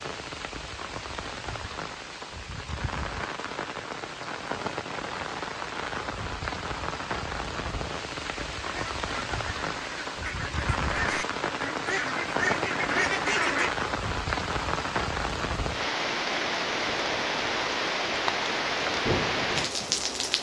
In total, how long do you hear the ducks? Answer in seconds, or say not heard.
5 s.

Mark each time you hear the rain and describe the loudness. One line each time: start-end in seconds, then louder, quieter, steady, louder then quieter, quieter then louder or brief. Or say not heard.
0.0-20.3 louder.